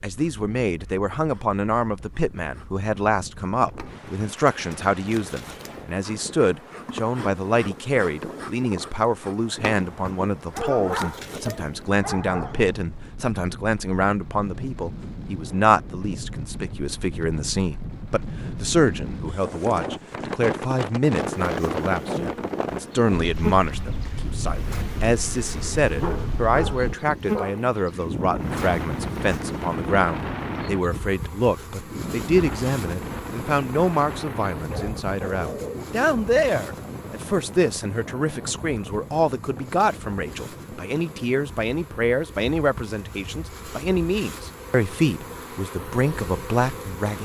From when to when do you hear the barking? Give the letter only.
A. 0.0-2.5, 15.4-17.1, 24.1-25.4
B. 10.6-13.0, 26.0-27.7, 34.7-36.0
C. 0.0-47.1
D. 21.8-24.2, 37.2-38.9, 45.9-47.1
B.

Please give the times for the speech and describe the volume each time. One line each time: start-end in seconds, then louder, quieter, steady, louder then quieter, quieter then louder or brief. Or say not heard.
0.0-47.1 steady.